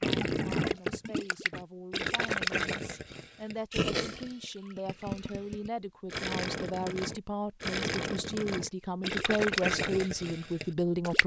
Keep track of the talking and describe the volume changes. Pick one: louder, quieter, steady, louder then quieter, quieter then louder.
louder.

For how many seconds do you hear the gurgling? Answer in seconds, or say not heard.
11 s.